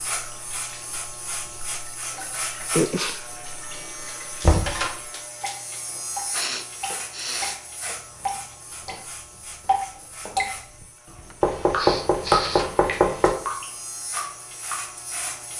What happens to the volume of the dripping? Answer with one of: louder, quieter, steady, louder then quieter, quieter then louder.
louder.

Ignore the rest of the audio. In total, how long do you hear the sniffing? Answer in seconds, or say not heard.
3 s.